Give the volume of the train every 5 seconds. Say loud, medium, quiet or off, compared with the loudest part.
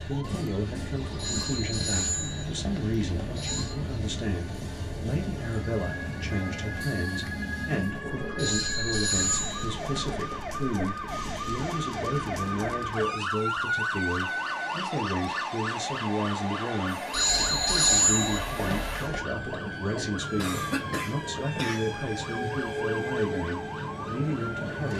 loud, loud, medium, loud, loud.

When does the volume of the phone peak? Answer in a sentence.
The volume of the phone peaks at 18 seconds.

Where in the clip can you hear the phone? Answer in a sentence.
You can hear the phone from 1.1 to 3.8 s, from 8.3 to 10.2 s and from 17.1 to 19.2 s.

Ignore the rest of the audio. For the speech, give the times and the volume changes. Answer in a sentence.
The speech can be heard from 0.1 to 24.9 s, at a steady volume.